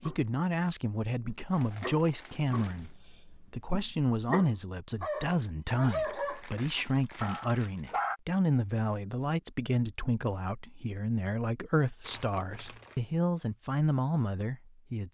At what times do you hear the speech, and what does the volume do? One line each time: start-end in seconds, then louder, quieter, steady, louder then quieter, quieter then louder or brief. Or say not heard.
0.0-15.1 steady.